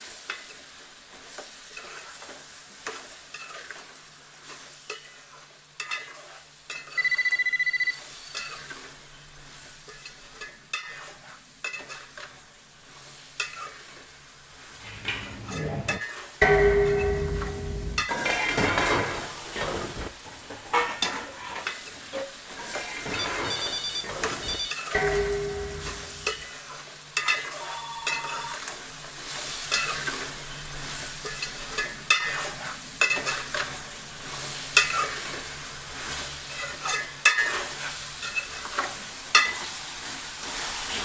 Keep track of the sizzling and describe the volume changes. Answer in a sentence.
The volume of the sizzling goes up.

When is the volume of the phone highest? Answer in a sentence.
The volume of the phone peaks at 7 seconds.